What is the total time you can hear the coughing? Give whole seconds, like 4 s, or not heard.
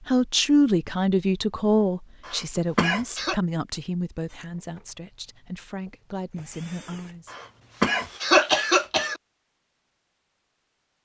3 s.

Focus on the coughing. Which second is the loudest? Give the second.
8 s.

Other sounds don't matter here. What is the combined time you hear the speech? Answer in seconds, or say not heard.
7 s.